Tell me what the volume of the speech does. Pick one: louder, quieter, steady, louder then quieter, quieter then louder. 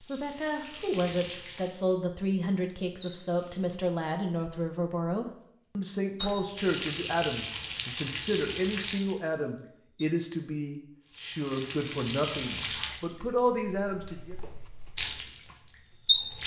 steady.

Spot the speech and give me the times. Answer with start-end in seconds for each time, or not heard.
0.0-14.3.